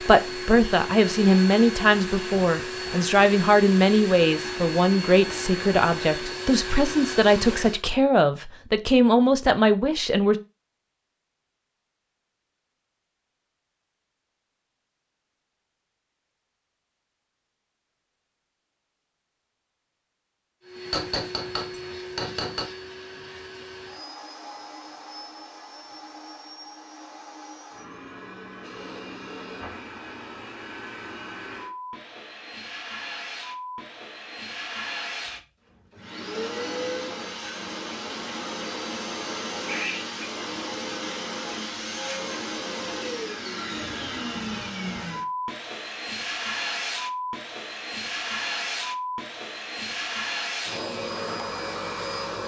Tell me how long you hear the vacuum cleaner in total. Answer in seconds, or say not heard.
40 s.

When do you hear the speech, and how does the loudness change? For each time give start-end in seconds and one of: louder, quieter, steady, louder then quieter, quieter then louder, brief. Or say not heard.
0.0-10.3 steady.